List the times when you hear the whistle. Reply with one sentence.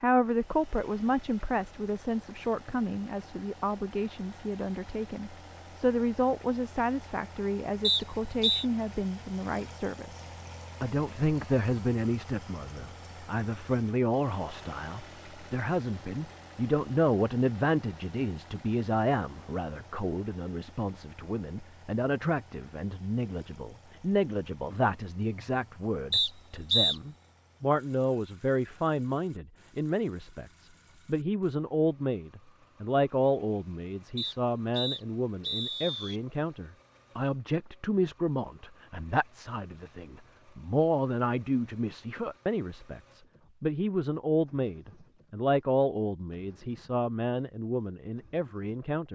The whistle can be heard from 7.8 to 8.7 s, from 26.1 to 26.9 s and from 34.1 to 36.2 s.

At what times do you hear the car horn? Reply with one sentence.
The car horn can't be heard in this clip.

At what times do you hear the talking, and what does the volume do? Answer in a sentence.
The talking can be heard from 0.0 to 49.1 s, at a steady volume.